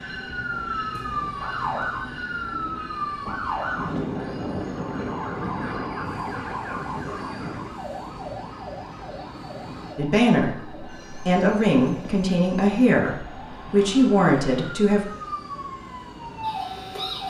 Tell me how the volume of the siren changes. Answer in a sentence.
The loudness of the siren goes down, then up.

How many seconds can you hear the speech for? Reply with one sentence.
The speech can be heard for 5 seconds in total.